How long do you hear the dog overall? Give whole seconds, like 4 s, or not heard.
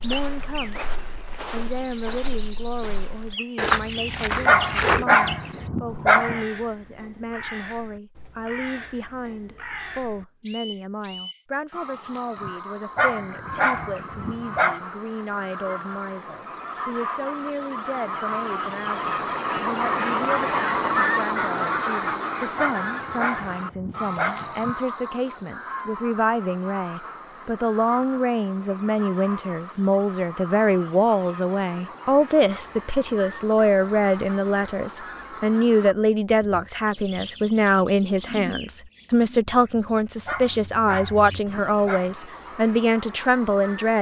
8 s.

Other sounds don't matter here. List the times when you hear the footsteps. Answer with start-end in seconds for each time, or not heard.
0.0-5.0.